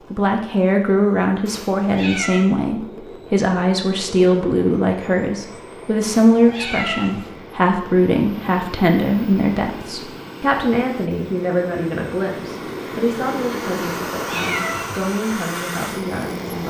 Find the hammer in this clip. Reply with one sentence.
You can't hear the hammer here.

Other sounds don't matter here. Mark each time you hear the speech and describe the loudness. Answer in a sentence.
The speech can be heard from 0.1 to 16.6 s, getting quieter.